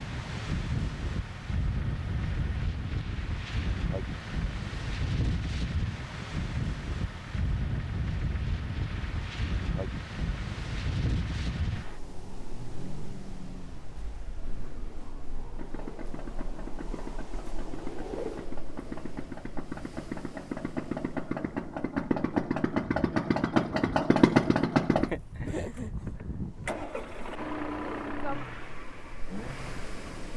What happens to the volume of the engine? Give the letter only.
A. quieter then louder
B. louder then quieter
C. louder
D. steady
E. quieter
C.